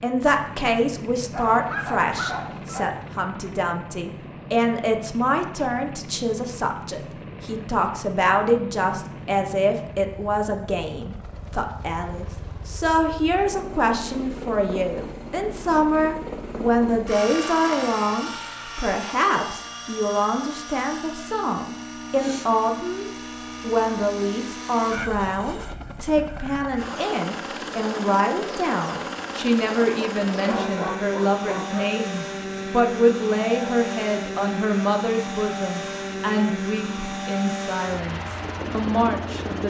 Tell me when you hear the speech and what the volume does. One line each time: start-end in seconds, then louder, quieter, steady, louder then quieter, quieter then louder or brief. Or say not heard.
0.0-39.6 steady.